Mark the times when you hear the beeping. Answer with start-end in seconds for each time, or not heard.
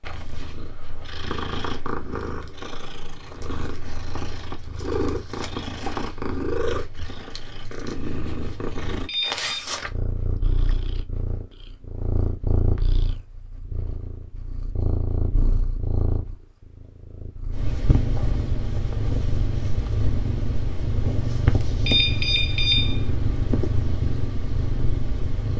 9.1-9.7, 21.9-23.1.